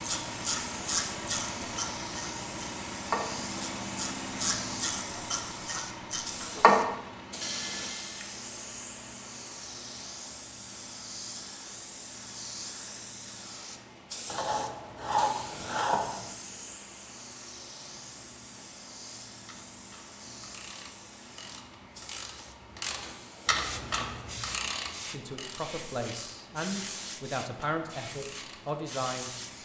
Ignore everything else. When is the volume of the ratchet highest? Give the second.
7 s.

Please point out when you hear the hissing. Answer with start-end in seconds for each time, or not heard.
0.1-29.5.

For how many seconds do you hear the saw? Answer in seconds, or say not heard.
2 s.